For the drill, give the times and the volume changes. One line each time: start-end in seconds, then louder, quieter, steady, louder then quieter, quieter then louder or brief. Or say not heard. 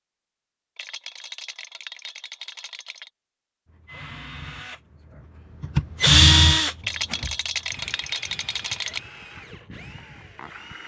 3.7-10.8 louder then quieter.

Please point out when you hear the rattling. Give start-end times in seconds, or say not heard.
0.8-3.1, 6.8-9.0.